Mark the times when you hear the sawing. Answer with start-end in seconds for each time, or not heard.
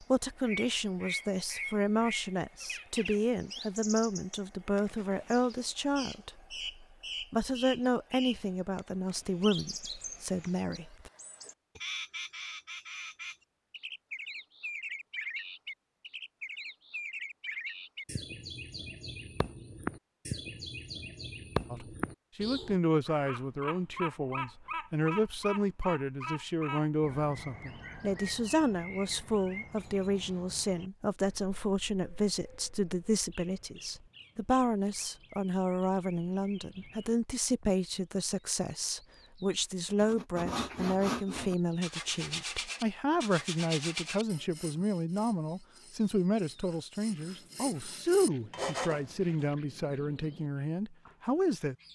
40.0-49.5.